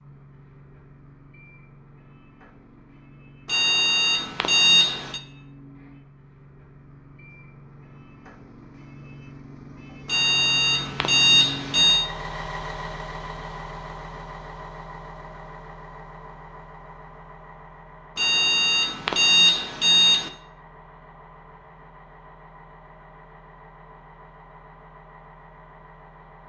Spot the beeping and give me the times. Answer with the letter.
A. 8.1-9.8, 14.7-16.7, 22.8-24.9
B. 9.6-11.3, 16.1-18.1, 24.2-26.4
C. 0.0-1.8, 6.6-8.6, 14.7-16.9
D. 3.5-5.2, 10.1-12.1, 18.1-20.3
D.